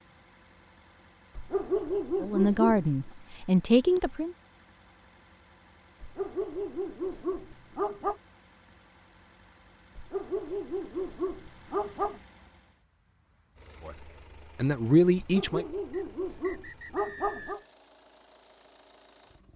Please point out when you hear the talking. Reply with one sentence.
The talking can be heard from 2.2 to 4.3 s and from 13.8 to 15.7 s.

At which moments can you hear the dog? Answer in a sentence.
You can hear the dog from 1.4 to 3.1 s, from 6.0 to 8.2 s, from 9.9 to 12.2 s and from 15.2 to 17.6 s.